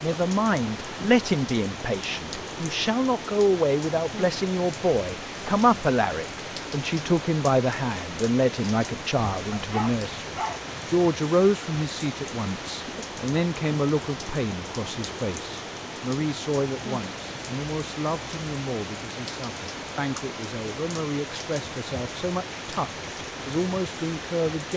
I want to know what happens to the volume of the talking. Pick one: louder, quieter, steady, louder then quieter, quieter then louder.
quieter.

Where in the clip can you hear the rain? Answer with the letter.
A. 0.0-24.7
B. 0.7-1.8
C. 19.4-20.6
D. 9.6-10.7
A.